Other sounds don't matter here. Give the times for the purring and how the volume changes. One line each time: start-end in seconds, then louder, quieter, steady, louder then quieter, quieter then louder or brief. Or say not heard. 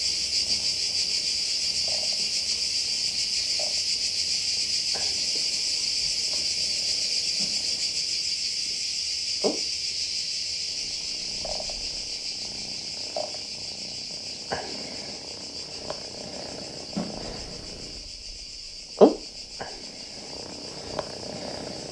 0.0-8.3 steady
9.3-21.8 louder then quieter.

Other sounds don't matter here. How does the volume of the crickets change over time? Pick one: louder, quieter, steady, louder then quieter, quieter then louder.
quieter.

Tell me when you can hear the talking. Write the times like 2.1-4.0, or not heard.
not heard.